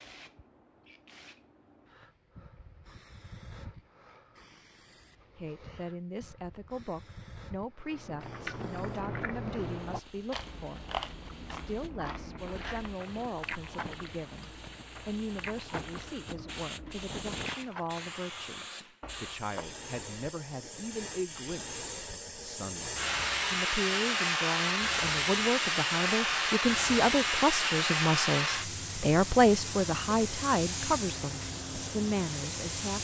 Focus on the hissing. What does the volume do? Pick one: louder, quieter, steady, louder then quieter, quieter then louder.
louder.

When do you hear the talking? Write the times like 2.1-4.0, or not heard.
5.3-32.9.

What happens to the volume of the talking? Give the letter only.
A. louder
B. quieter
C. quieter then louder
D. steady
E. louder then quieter
A.